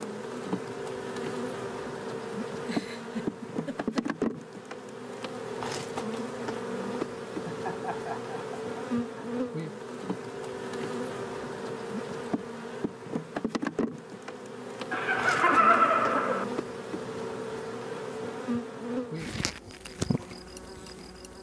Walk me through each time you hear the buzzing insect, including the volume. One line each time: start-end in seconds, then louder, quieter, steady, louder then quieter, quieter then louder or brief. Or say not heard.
0.0-21.3 steady.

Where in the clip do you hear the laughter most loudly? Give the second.
16 s.